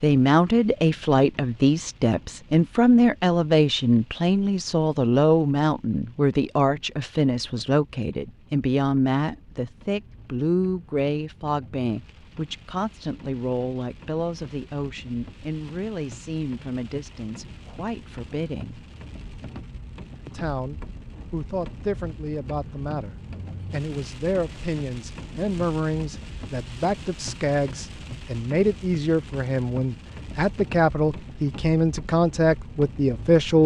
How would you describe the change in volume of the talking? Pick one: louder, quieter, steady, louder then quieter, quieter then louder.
quieter then louder.